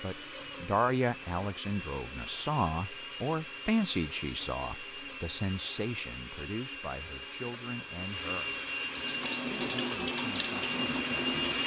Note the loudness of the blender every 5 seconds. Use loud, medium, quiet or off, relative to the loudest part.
medium, medium, loud.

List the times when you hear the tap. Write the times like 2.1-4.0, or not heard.
8.8-11.6.